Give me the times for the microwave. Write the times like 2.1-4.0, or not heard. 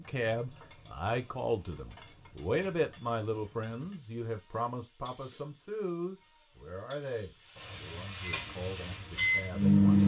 8.3-10.0.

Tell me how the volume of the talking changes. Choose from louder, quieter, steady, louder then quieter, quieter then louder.
quieter.